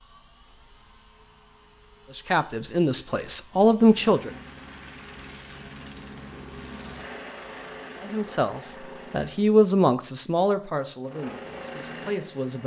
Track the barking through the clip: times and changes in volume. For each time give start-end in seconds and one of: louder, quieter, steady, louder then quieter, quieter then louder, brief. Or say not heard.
not heard.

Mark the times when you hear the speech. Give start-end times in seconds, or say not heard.
2.1-4.3, 8.0-12.6.